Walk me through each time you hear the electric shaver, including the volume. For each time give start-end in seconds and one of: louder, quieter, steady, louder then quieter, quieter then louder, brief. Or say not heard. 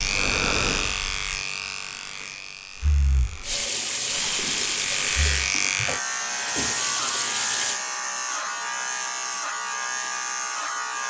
0.0-11.0 quieter then louder.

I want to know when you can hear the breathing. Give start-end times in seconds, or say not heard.
0.0-5.5.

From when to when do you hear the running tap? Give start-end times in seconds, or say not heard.
3.4-7.8.